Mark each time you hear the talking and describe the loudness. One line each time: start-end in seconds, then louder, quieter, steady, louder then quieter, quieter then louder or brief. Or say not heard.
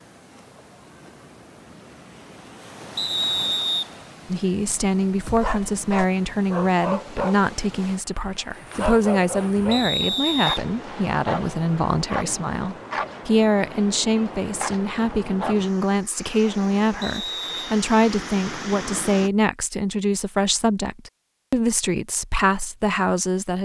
4.3-23.6 steady.